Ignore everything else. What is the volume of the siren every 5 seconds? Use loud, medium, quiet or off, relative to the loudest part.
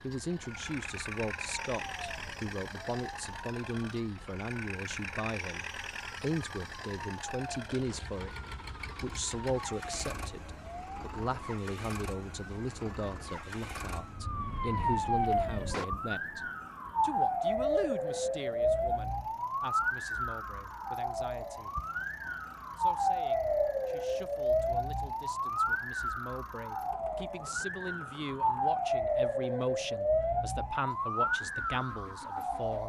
quiet, quiet, medium, loud, loud, loud, loud.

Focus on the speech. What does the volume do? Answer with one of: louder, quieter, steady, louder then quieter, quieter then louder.
quieter then louder.